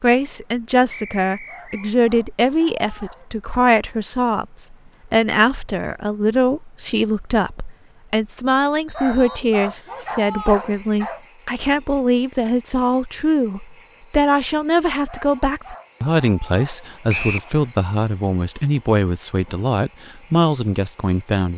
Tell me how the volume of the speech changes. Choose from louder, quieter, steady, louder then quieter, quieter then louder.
steady.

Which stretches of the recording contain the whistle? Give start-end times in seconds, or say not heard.
0.9-1.9, 8.8-10.0, 17.1-17.5.